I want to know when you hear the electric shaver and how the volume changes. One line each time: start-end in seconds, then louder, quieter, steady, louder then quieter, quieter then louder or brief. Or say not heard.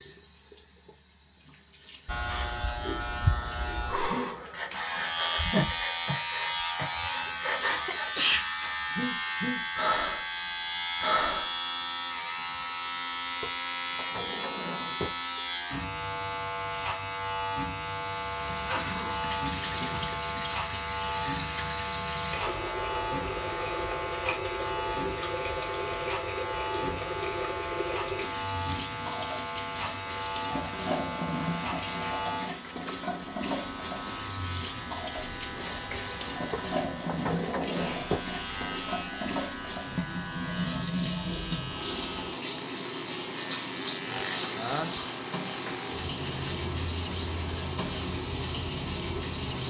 2.0-49.6 quieter.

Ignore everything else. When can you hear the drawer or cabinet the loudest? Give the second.
38 s.